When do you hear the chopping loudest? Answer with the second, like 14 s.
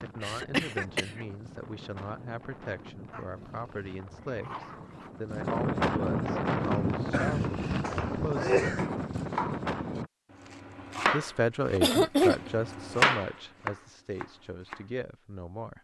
13 s.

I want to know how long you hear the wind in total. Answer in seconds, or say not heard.
10 s.